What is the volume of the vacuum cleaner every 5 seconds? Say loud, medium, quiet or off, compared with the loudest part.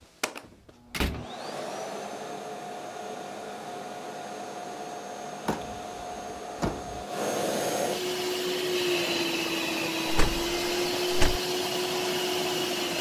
medium, loud, loud.